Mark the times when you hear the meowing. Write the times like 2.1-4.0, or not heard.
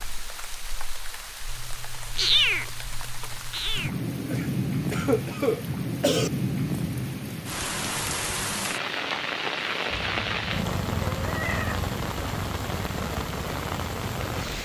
2.1-3.9, 9.9-11.9.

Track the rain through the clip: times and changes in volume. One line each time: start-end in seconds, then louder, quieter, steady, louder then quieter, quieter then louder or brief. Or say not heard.
0.0-14.5 louder.